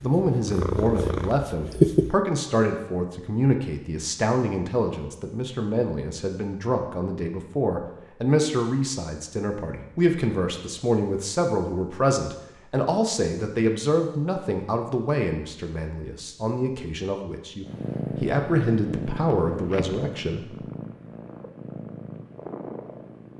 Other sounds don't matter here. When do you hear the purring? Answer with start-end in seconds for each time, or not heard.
0.0-2.2, 17.6-23.3.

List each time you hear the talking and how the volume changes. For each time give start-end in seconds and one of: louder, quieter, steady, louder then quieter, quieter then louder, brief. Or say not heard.
0.0-20.6 steady.